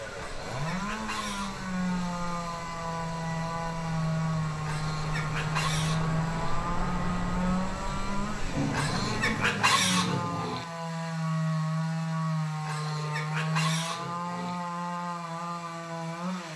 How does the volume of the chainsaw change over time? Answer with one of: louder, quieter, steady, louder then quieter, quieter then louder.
steady.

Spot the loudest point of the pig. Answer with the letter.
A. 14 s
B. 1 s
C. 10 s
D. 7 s
C.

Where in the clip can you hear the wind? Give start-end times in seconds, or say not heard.
0.0-9.4.